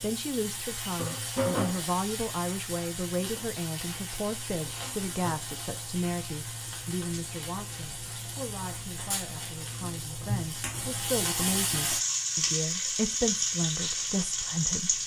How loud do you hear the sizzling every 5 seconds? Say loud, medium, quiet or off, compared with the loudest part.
medium, medium, loud.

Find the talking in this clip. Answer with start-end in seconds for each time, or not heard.
0.0-15.0.